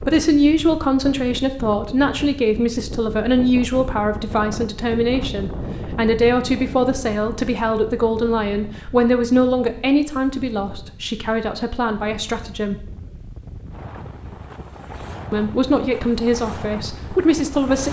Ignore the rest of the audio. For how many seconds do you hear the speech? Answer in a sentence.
You can hear the speech for 15 seconds altogether.